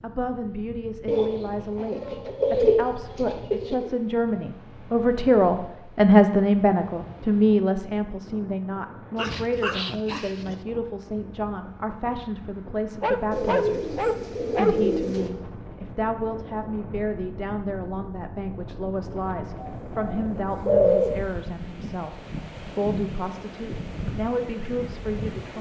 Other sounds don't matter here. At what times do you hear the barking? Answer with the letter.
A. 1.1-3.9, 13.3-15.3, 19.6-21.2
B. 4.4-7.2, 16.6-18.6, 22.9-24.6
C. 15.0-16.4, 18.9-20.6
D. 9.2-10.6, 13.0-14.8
D.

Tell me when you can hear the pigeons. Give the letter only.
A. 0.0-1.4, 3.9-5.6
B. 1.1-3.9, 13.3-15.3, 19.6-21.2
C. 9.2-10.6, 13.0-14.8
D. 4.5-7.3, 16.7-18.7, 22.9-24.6
B.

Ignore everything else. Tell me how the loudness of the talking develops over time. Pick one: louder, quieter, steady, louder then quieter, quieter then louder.
louder then quieter.